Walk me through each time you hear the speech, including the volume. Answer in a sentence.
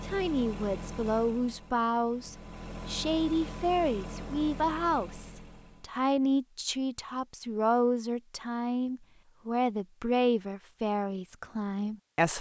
The speech can be heard from 0.0 to 12.3 s, at a steady volume.